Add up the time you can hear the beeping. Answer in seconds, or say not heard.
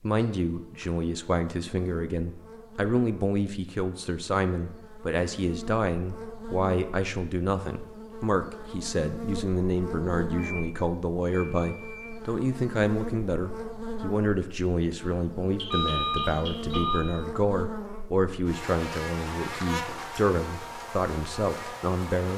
4 s.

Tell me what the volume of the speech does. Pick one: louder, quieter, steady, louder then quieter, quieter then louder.
steady.